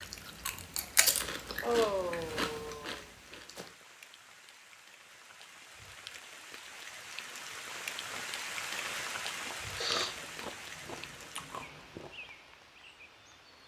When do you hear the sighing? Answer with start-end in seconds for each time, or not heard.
1.6-3.0, 9.8-10.2.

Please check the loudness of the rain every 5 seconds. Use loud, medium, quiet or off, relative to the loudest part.
quiet, loud, medium.